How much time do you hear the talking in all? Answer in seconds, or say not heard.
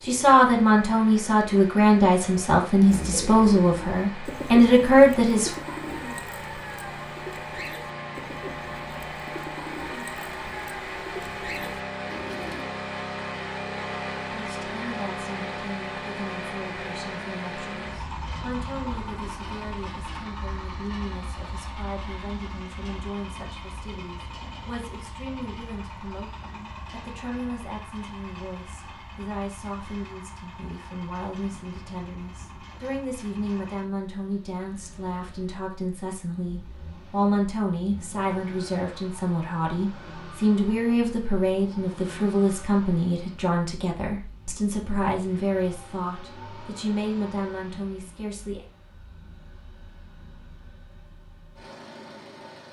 40 s.